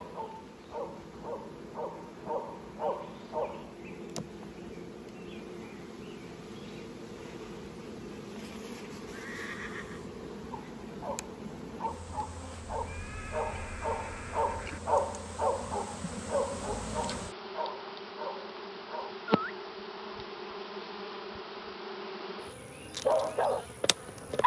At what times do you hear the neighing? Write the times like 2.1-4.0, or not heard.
9.1-10.1, 12.7-14.8.